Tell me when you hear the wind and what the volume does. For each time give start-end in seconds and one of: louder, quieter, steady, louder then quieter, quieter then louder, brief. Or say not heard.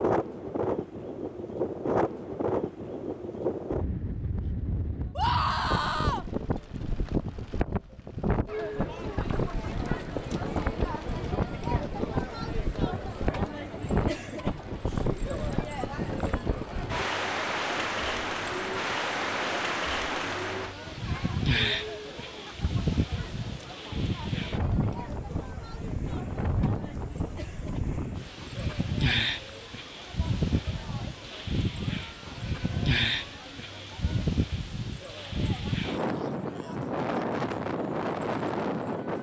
0.0-39.1 steady.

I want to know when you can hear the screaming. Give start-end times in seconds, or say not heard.
5.2-6.2.